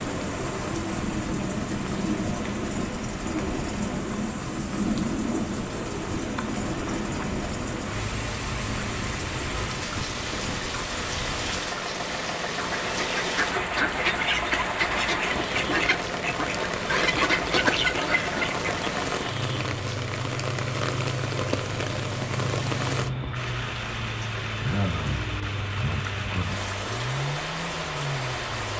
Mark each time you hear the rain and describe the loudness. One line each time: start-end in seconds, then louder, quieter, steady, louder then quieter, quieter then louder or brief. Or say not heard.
0.0-28.7 steady.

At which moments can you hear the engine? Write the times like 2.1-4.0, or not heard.
0.0-28.7.